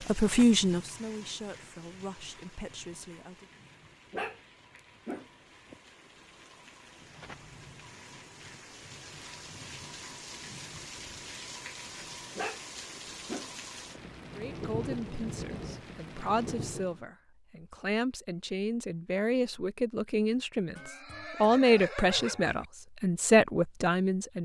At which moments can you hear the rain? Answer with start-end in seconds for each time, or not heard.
0.0-17.1.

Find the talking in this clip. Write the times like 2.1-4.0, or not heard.
0.1-3.5, 14.3-24.4.